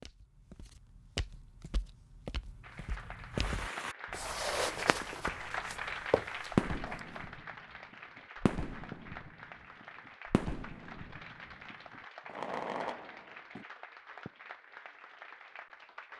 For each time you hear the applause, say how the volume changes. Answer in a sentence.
The applause can be heard from 2.6 to 16.1 s, getting quieter.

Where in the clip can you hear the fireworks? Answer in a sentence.
You can hear the fireworks from 3.4 to 7.5 s, from 8.4 to 9.3 s and from 10.3 to 13.7 s.